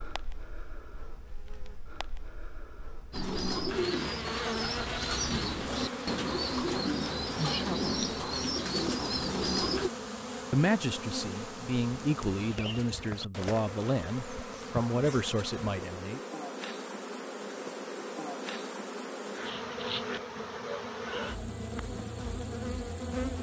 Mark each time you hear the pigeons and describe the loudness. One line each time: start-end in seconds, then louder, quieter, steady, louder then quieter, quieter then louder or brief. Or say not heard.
3.1-9.9 steady.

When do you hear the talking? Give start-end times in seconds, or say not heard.
7.5-8.1, 10.5-16.2.